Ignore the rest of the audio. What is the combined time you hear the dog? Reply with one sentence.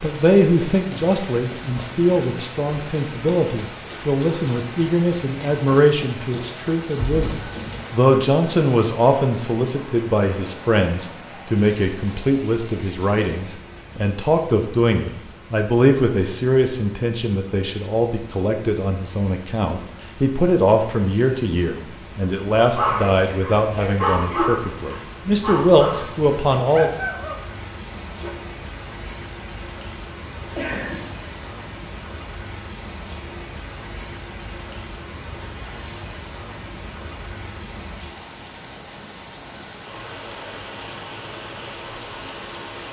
The dog can be heard for 6 seconds in total.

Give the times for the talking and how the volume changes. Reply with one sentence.
The talking can be heard from 0.0 to 26.9 s, at a steady volume.